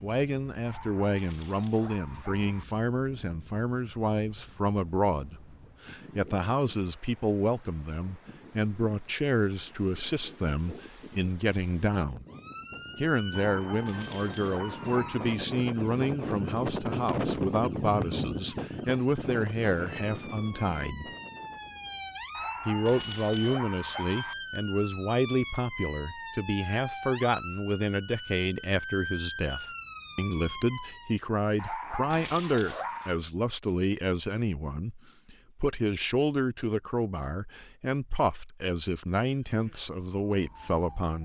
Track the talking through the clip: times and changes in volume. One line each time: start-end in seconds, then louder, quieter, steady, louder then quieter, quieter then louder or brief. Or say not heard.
0.0-12.2 steady
12.9-21.1 steady
22.6-41.2 steady.